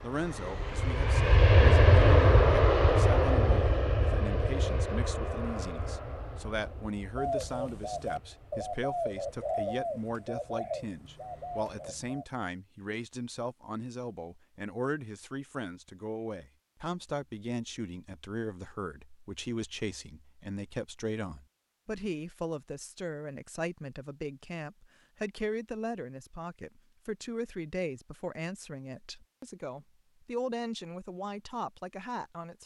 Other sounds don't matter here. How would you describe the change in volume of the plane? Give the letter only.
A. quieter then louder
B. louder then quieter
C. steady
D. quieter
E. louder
D.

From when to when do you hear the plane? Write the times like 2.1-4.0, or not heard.
0.1-11.8.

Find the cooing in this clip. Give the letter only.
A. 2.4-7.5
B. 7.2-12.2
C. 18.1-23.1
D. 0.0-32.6
B.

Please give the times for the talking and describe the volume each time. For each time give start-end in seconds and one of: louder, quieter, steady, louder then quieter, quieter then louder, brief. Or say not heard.
0.0-32.6 steady.